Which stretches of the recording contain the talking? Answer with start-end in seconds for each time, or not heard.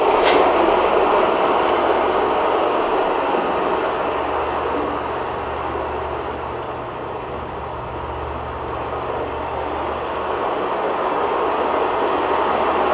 not heard.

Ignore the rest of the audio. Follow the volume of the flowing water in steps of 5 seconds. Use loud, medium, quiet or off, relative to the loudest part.
loud, medium, loud.